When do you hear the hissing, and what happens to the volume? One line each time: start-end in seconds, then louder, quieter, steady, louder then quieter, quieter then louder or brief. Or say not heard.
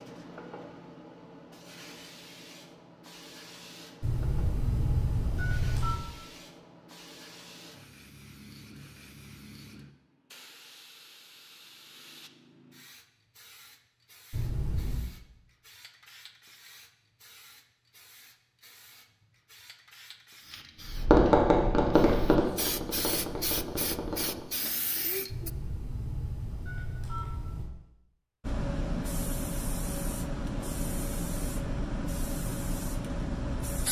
0.0-25.5 quieter then louder
28.4-33.8 steady.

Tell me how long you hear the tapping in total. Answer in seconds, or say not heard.
4 s.